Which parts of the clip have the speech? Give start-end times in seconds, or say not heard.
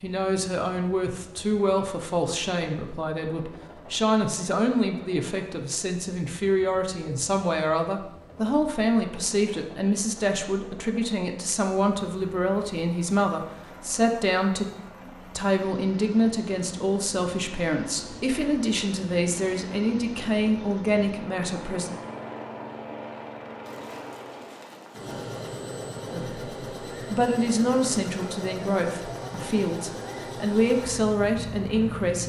0.0-21.9, 26.1-32.2.